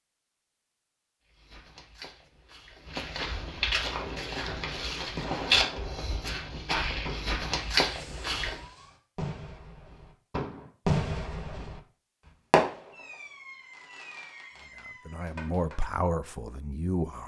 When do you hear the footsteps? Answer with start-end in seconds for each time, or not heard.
1.2-8.7.